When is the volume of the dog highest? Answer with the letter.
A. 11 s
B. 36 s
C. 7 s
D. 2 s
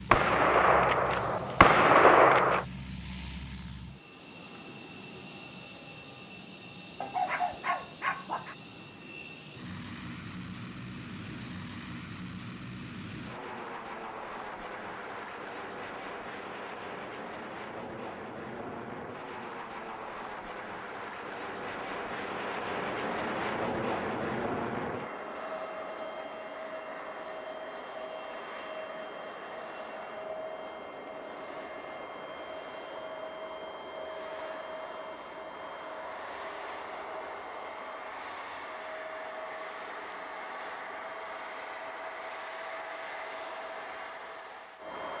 C.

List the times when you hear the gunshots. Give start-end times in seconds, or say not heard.
0.1-2.6.